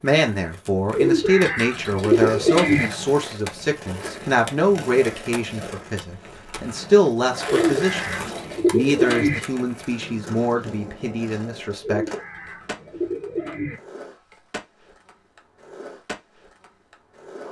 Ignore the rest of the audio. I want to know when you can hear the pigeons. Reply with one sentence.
The pigeons can be heard from 0.9 to 2.9 s, from 7.5 to 9.4 s and from 11.8 to 13.8 s.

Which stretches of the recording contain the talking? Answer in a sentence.
The talking can be heard from 0.0 to 12.1 s.